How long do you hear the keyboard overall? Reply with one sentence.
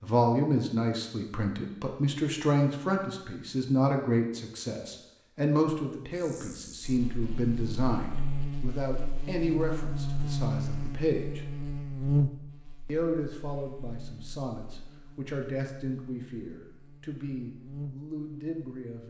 The keyboard can't be heard in this clip.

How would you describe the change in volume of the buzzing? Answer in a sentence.
The volume of the buzzing goes up, then down.